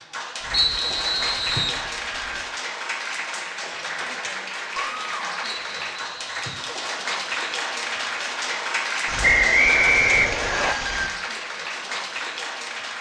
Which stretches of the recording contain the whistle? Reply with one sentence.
The whistle can be heard from 0.5 to 1.8 s, from 5.4 to 6.7 s and from 9.2 to 10.8 s.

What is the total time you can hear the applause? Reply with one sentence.
You can hear the applause for 13 seconds altogether.